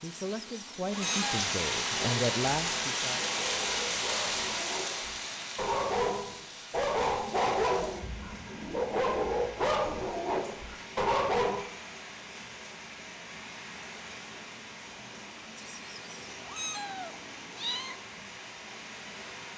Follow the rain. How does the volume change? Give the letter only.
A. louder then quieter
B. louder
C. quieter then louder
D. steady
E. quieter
E.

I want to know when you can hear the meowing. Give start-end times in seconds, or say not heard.
0.0-1.4, 15.6-18.0.